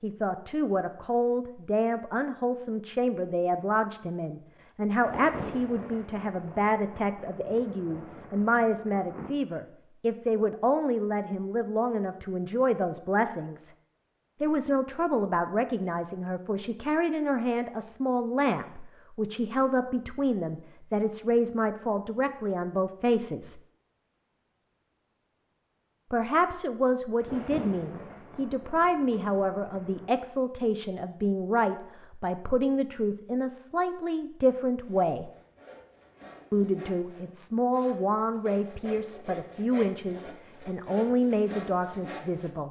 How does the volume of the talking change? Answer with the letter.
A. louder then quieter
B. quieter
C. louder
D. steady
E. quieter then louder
D.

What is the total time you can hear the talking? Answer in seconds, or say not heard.
38 s.